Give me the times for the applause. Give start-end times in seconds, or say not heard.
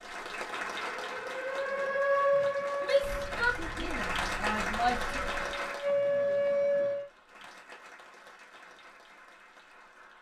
0.0-10.1.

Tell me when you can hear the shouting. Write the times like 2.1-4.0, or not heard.
2.8-5.2.